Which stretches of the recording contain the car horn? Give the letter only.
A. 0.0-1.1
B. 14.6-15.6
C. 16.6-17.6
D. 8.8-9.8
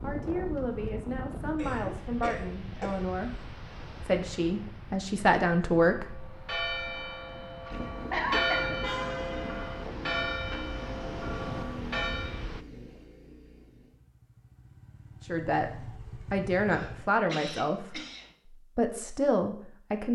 D.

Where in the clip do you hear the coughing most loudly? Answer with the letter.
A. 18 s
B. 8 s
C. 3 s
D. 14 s
B.